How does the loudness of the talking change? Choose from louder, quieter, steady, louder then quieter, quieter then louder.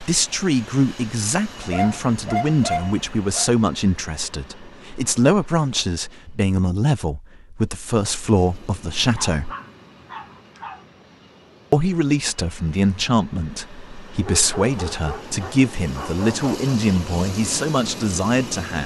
steady.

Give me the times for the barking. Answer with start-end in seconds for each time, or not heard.
1.6-3.5, 9.2-10.8, 14.2-16.8.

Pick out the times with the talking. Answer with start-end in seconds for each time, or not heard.
0.0-9.5, 11.7-18.8.